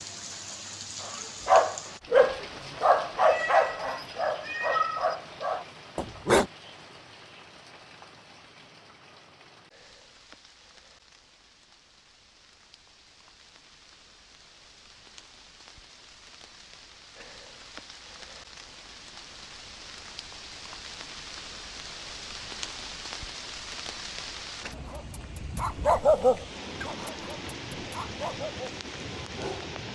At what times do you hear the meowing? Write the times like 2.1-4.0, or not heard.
3.2-5.2.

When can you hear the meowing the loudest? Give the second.
5 s.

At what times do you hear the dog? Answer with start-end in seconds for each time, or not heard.
1.0-6.5, 24.7-29.8.